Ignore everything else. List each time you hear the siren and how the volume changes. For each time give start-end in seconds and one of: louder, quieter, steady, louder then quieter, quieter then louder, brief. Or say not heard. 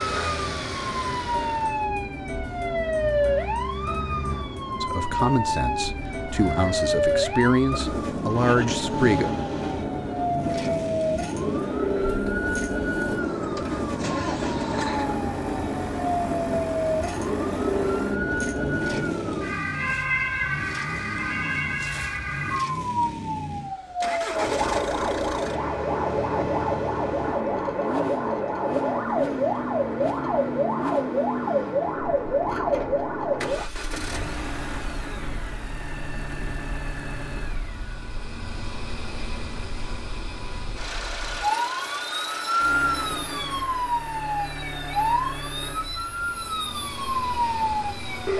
0.0-48.3 steady.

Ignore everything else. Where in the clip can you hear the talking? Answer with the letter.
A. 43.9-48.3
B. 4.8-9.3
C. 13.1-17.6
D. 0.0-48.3
B.